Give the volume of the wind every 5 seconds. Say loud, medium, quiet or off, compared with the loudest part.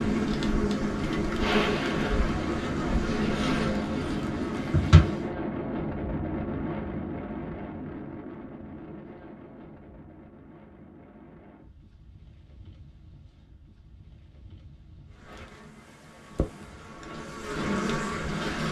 loud, loud, quiet, quiet.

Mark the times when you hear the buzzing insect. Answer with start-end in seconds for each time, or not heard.
0.0-5.2, 15.2-18.6.